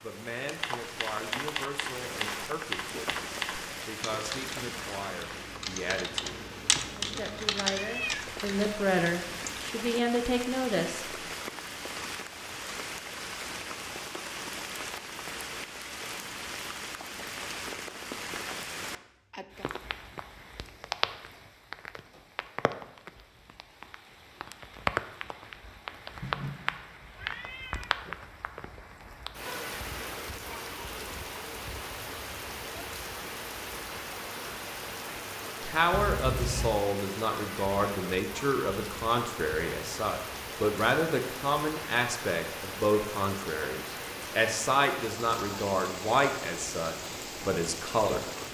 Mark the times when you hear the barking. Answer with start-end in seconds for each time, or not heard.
not heard.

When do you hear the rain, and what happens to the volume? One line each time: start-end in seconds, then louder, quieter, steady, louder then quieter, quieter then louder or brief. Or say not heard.
0.0-48.4 steady.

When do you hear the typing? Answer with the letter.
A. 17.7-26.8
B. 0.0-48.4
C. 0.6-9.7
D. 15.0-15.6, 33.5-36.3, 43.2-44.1
C.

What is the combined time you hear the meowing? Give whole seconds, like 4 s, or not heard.
4 s.